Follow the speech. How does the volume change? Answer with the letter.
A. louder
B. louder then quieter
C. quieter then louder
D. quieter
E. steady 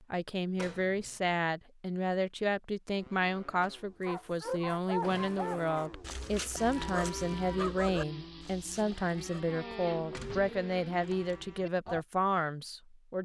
E.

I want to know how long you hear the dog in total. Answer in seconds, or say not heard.
6 s.